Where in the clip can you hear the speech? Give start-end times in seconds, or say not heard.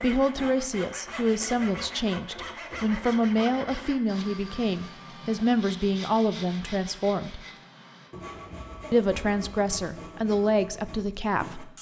0.0-7.5, 8.9-11.7.